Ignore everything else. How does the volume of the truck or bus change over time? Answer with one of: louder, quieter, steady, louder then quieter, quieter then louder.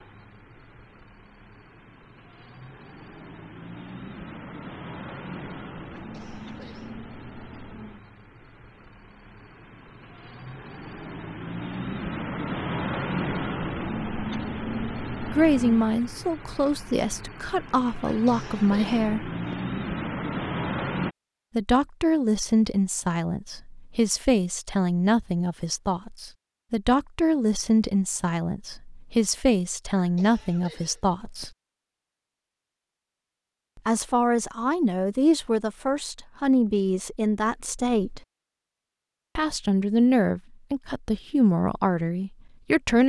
louder.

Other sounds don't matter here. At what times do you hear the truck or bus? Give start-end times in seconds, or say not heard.
0.0-21.1.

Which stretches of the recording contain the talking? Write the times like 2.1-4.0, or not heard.
15.2-19.3, 21.6-31.5, 33.9-38.2, 39.4-43.0.